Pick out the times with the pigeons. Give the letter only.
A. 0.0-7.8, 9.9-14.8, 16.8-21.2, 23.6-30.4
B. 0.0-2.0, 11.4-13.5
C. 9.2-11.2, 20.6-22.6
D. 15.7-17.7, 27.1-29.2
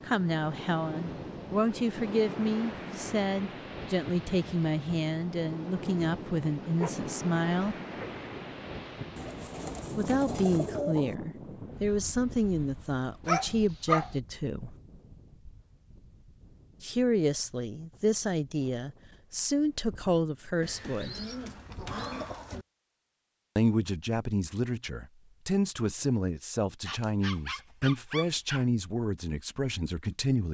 C.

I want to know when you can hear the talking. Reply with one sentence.
You can hear the talking from 0.0 to 7.8 s, from 9.9 to 14.8 s, from 16.8 to 21.2 s and from 23.6 to 30.4 s.